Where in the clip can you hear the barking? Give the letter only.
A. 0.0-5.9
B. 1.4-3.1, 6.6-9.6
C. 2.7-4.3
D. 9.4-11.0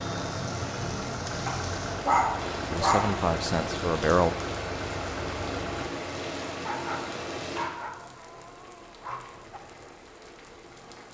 B.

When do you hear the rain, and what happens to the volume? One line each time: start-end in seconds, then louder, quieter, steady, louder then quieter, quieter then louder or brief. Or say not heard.
0.0-11.0 quieter.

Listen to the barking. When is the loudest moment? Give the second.
2 s.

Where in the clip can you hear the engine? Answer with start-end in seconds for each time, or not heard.
0.0-5.9.